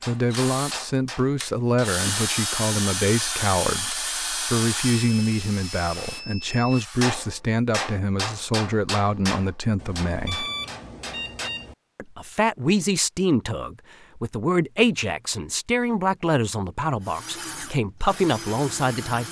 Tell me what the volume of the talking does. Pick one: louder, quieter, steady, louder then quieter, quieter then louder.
steady.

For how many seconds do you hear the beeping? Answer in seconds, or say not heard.
4 s.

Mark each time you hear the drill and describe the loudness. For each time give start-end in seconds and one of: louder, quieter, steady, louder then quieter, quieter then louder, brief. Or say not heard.
0.1-7.2 louder then quieter
17.0-19.2 brief.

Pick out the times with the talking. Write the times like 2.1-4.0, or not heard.
0.1-10.4, 11.9-19.2.